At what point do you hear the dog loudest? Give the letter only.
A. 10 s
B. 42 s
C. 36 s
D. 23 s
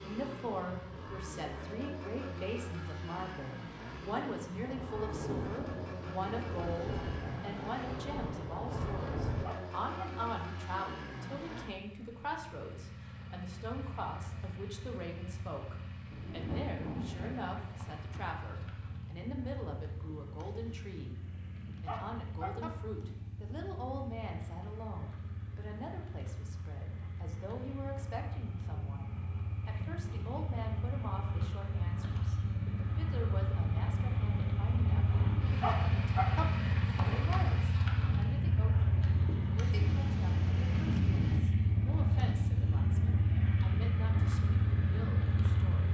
C.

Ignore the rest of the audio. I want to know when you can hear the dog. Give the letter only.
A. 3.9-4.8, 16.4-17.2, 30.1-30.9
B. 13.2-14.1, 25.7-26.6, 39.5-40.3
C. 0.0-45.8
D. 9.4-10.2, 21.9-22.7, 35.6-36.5
D.